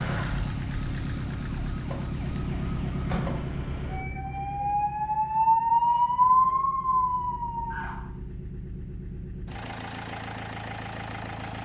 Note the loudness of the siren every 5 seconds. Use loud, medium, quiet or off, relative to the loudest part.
quiet, loud, off.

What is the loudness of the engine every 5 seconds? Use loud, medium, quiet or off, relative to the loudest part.
loud, medium, loud.